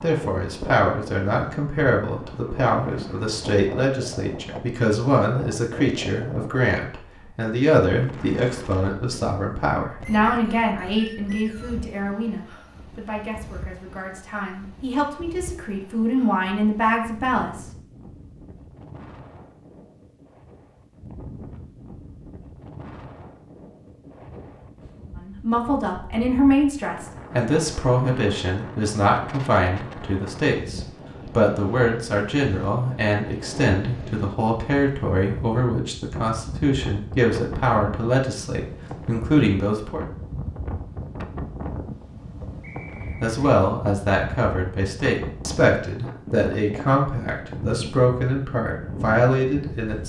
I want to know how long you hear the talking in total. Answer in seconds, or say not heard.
39 s.